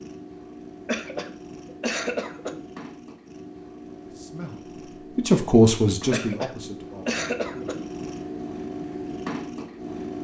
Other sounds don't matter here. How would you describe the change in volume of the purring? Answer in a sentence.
The loudness of the purring goes up.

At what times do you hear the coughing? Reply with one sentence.
You can hear the coughing from 0.8 to 2.6 s and from 6.1 to 7.8 s.